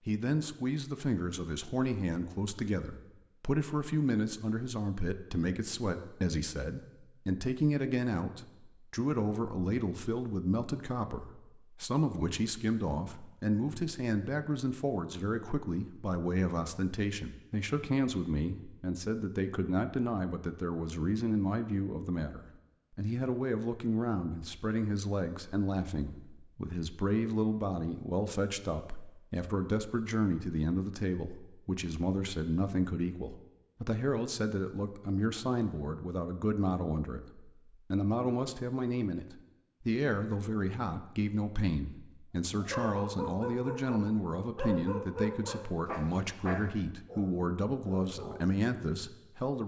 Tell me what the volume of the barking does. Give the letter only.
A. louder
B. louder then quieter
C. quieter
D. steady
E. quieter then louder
C.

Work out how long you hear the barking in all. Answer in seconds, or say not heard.
6 s.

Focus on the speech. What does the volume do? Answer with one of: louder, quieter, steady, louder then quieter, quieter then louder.
steady.